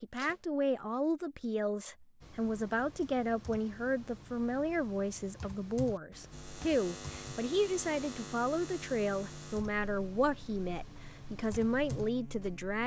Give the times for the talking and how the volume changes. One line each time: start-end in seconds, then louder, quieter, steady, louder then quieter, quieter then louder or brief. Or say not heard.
0.0-12.8 steady.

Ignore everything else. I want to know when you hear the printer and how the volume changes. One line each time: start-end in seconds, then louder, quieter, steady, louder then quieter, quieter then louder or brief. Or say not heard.
not heard.